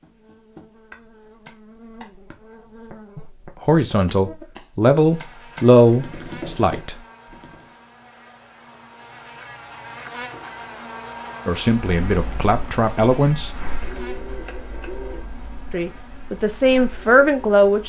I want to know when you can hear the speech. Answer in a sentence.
The speech can be heard from 3.1 to 7.0 s, from 11.4 to 13.6 s and from 15.7 to 17.8 s.